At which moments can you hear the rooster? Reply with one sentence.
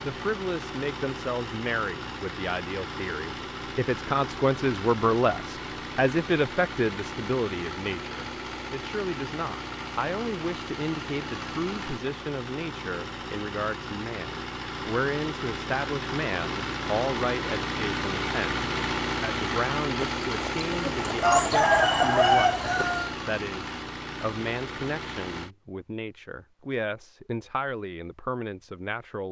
The rooster can be heard from 20.0 to 23.1 s.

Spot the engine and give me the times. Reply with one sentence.
The engine can be heard from 0.0 to 25.5 s.